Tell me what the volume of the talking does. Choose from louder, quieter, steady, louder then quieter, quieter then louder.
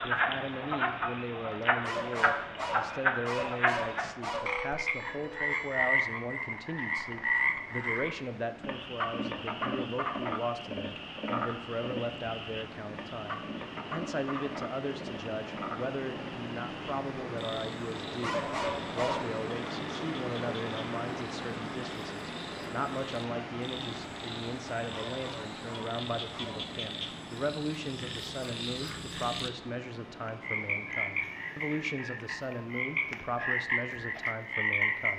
steady.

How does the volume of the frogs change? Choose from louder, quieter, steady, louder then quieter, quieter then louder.
quieter then louder.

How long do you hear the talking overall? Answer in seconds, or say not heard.
35 s.